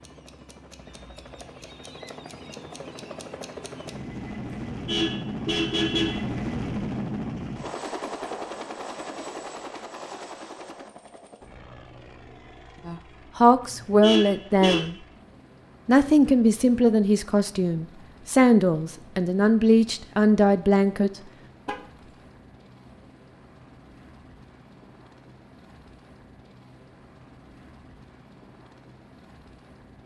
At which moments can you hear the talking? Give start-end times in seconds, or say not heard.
12.8-14.9, 15.8-21.1.